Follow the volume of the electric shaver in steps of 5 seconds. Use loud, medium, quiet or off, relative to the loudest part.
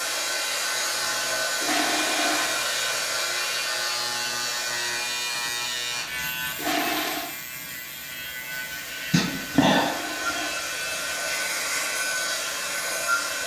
loud, loud, medium.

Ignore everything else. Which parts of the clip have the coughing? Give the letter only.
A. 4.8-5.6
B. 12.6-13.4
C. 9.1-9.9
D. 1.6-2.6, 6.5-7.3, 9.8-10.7
C.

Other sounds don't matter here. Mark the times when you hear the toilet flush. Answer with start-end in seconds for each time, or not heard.
1.6-2.6, 6.5-7.3, 9.8-10.7.